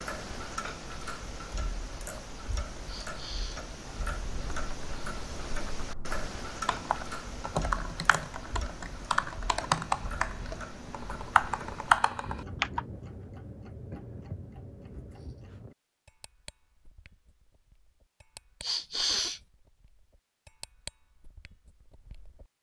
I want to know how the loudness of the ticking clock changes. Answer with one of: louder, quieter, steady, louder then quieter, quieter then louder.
quieter.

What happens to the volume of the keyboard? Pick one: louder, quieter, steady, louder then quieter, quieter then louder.
louder.